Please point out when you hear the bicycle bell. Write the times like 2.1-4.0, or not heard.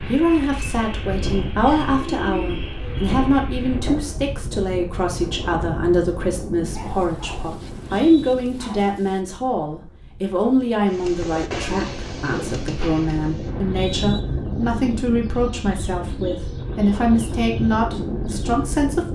not heard.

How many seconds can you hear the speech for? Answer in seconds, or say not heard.
19 s.